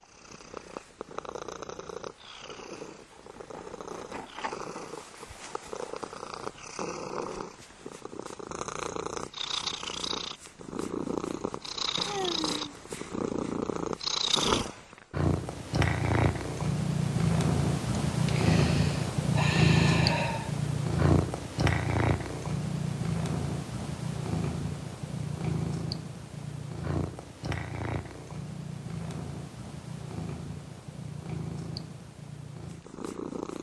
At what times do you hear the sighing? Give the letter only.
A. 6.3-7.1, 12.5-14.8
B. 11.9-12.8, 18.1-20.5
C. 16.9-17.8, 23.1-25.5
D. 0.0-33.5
B.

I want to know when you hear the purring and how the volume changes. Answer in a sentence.
The purring can be heard from 0.0 to 33.5 s, getting louder then quieter.